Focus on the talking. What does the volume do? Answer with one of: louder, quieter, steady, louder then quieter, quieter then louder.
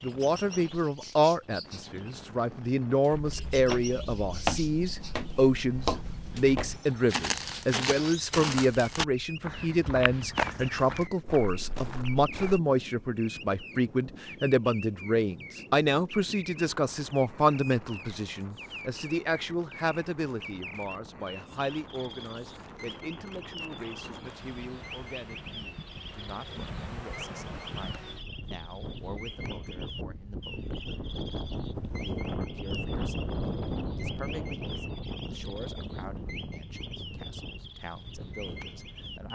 quieter.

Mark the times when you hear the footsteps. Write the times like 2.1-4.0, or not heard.
3.1-12.6.